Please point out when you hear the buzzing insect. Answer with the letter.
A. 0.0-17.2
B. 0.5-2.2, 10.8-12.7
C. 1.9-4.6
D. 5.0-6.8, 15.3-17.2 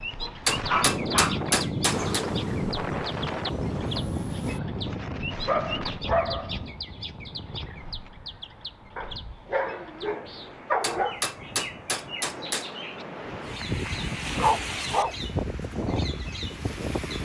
C.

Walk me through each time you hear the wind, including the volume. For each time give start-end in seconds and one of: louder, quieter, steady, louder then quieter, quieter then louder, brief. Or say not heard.
0.0-17.2 quieter then louder.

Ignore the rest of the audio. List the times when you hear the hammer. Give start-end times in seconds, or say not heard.
0.5-2.2, 10.8-12.7.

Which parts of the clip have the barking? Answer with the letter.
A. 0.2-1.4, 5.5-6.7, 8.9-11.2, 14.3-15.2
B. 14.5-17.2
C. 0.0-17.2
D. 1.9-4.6
A.